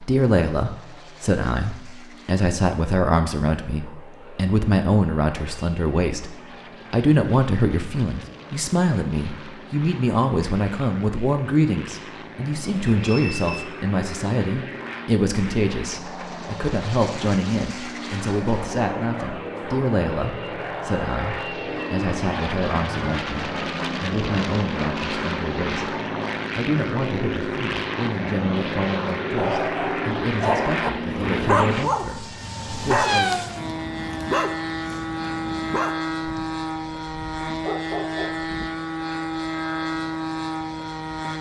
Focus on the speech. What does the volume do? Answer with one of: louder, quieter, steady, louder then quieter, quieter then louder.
quieter.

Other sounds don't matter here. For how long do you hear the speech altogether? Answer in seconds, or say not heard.
33 s.